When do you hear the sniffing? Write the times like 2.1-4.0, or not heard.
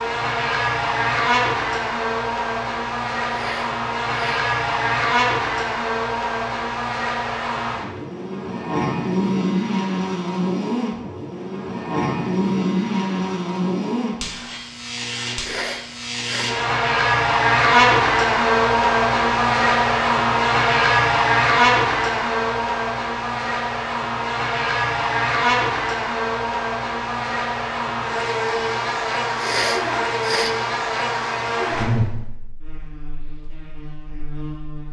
3.2-4.5, 15.3-16.6, 29.4-30.6.